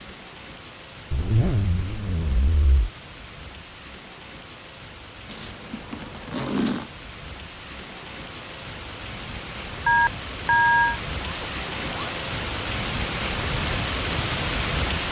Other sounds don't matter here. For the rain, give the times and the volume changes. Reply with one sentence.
The rain can be heard from 0.0 to 15.0 s, getting louder.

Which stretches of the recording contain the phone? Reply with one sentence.
You can hear the phone from 9.8 to 11.0 s.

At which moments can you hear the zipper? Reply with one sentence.
You can hear the zipper from 1.1 to 2.9 s, from 5.2 to 6.9 s and from 11.2 to 12.2 s.